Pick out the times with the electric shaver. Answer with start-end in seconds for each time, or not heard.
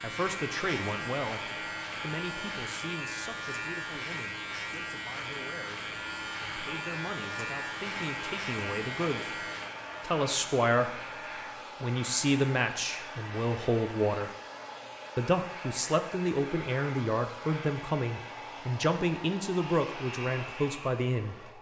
0.0-11.7, 19.5-21.5.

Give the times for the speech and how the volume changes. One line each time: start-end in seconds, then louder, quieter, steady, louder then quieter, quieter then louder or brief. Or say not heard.
0.0-11.0 quieter then louder
11.8-14.3 brief
15.2-21.4 steady.